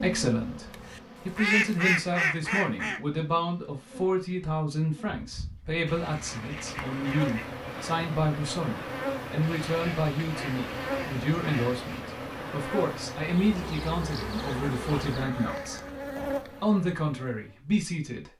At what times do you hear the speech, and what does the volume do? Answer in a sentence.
The speech can be heard from 0.0 to 18.3 s, at a steady volume.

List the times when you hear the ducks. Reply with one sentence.
You can hear the ducks from 0.7 to 3.0 s, from 5.8 to 7.5 s, from 9.4 to 12.1 s and from 14.0 to 15.9 s.